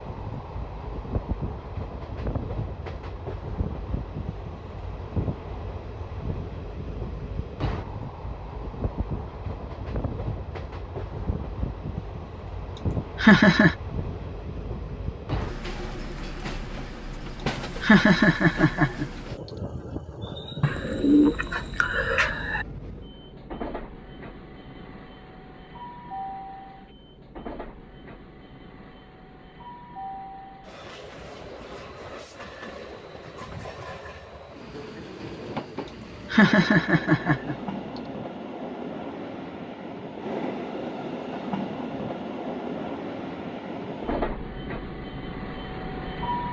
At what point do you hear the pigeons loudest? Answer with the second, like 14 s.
21 s.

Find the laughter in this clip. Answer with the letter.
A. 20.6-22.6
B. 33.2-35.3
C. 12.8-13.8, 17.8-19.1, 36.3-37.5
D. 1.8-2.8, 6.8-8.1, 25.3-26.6
C.